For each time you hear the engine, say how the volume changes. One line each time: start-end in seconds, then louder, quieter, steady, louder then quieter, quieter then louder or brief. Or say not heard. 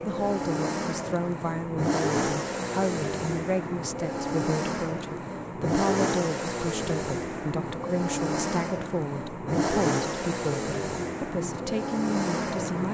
0.0-12.8 steady.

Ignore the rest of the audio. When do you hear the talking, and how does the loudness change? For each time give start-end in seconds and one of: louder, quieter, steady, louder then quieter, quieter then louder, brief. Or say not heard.
0.0-12.8 steady.